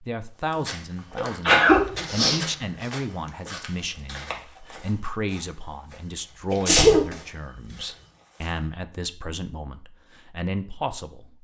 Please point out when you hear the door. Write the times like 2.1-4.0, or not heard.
not heard.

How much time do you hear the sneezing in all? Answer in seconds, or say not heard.
2 s.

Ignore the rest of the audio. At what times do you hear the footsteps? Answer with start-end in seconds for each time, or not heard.
0.5-8.7.